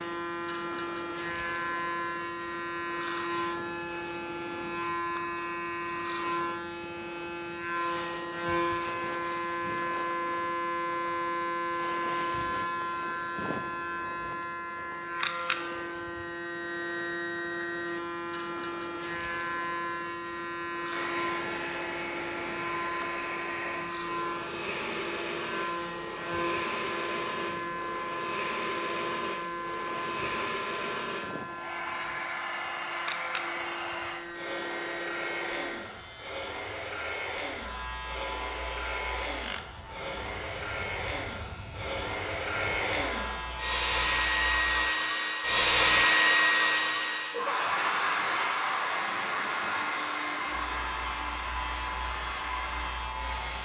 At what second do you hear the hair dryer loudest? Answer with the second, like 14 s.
46 s.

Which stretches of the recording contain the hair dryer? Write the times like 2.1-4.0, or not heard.
20.9-53.5.